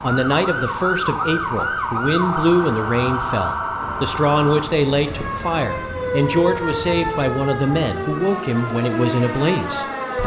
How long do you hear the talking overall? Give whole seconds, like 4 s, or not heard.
10 s.